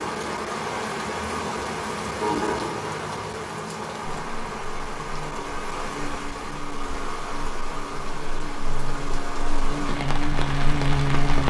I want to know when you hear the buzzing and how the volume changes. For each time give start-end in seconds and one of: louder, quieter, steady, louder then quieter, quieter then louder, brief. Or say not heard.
4.0-11.4 louder.